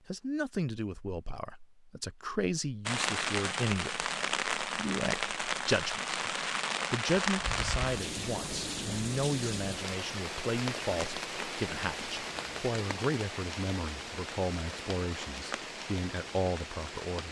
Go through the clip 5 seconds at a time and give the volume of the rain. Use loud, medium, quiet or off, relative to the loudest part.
loud, loud, medium, medium.